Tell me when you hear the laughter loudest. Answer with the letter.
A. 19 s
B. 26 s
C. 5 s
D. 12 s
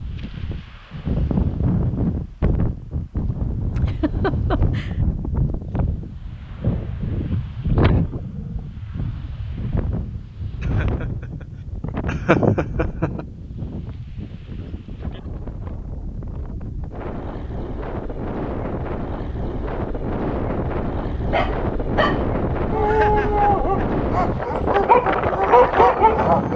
D.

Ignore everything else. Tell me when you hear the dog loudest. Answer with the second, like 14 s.
26 s.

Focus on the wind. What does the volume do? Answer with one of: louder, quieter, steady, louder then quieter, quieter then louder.
quieter then louder.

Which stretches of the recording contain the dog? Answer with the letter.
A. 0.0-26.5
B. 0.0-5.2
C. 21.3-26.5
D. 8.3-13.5
C.